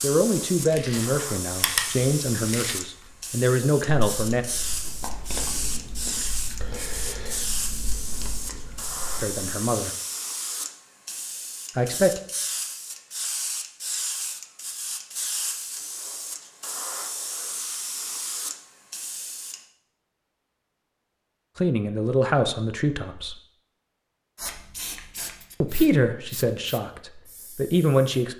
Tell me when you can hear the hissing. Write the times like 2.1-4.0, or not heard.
0.0-19.6, 24.4-28.1.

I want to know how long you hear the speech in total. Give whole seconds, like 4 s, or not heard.
10 s.